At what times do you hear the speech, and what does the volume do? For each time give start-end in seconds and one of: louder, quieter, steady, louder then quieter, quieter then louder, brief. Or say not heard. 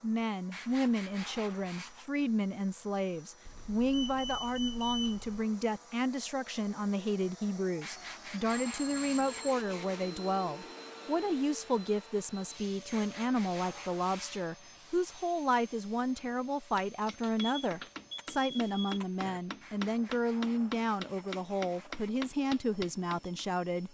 0.0-23.8 steady.